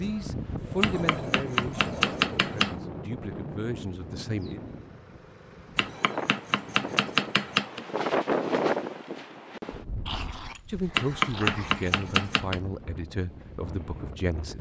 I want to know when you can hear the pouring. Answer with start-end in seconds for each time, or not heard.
not heard.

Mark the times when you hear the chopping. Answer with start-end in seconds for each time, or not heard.
0.8-2.8, 5.8-7.8, 10.9-12.6.